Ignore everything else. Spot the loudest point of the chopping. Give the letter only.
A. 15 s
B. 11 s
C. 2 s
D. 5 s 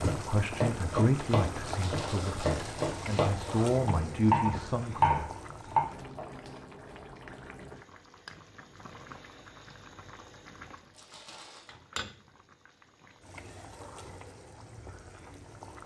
D.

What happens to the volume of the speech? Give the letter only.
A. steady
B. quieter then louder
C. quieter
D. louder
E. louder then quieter
B.